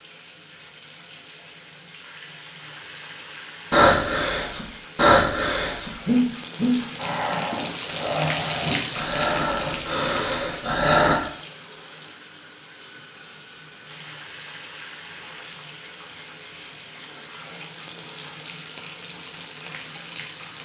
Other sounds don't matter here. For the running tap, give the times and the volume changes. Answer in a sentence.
You can hear the running tap from 0.0 to 20.6 s, getting louder then quieter.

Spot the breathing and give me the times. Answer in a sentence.
The breathing can be heard from 3.7 to 11.2 s.